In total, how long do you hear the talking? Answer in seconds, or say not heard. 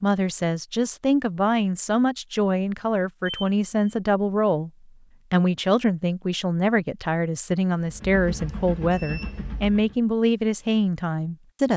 11 s.